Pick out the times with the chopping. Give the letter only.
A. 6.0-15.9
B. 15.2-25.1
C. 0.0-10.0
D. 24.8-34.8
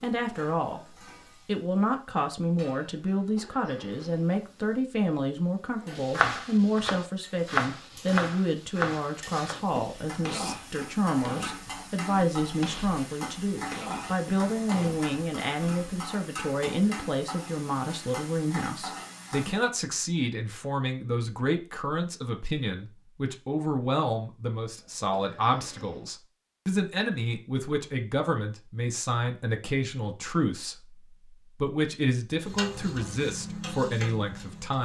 A.